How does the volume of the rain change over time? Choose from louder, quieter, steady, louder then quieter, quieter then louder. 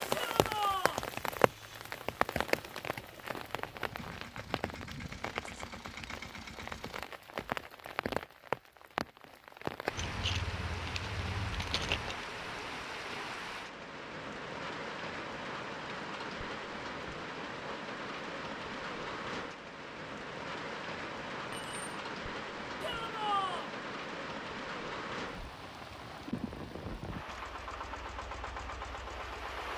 steady.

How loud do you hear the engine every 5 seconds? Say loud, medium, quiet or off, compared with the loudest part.
medium, loud, off, off, off, loud.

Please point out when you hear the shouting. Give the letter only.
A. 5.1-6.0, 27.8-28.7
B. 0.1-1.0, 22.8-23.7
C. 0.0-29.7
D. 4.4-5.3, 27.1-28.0
B.